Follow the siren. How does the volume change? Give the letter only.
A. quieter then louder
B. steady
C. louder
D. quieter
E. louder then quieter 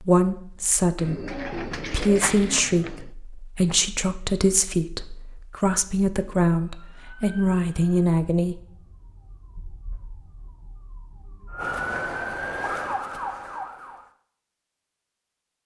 A.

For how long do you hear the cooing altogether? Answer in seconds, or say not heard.
2 s.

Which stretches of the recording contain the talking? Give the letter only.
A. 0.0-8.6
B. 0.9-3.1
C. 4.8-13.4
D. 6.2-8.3
A.